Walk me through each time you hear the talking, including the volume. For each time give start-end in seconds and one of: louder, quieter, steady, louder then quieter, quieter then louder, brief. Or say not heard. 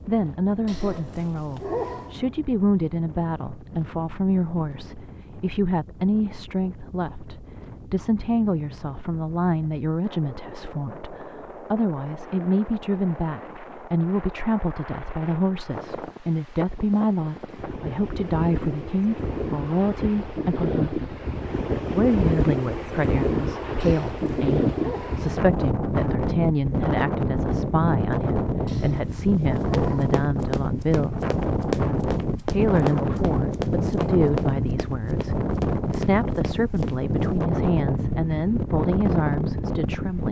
0.1-21.1 steady
21.9-31.2 steady
32.4-40.2 steady.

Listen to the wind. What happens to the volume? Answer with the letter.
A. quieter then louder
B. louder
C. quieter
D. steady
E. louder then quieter
B.